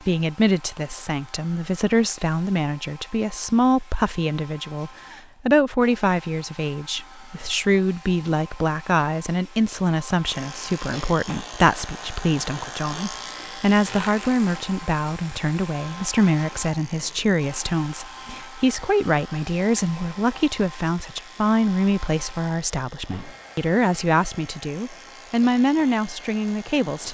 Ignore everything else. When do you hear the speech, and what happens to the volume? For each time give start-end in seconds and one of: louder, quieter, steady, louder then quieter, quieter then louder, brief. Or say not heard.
0.1-27.0 steady.